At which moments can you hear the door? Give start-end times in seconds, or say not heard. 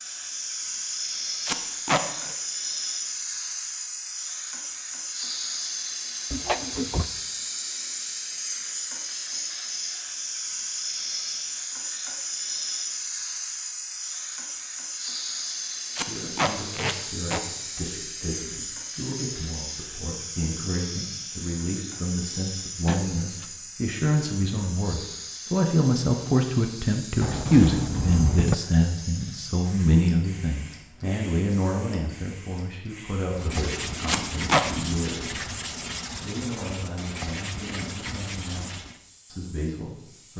6.3-7.1, 22.9-23.5, 27.2-28.6.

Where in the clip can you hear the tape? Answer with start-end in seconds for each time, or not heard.
1.4-2.4, 15.9-17.4, 34.0-34.6.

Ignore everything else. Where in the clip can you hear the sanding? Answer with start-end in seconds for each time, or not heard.
33.4-39.0.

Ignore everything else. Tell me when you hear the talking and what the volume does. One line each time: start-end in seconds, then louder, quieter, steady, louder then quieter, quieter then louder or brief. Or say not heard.
16.0-35.4 louder then quieter
36.2-38.7 brief
39.3-40.3 brief.